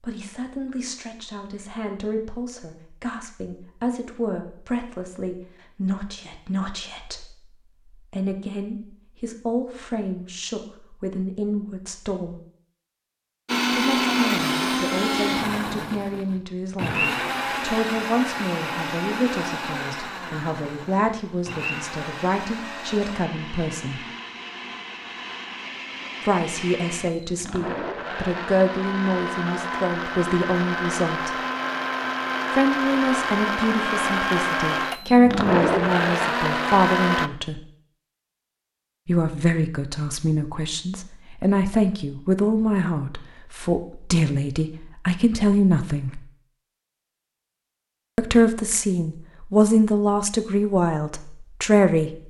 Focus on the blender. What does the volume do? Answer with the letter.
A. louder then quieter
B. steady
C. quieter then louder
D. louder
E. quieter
C.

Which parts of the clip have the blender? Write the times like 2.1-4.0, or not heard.
13.4-37.3.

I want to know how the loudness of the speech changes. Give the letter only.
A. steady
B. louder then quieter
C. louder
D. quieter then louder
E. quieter
C.